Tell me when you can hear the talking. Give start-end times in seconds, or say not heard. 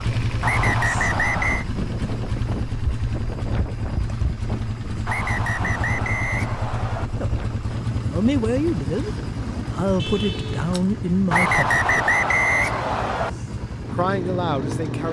7.0-12.1, 13.9-15.0.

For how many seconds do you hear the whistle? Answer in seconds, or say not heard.
5 s.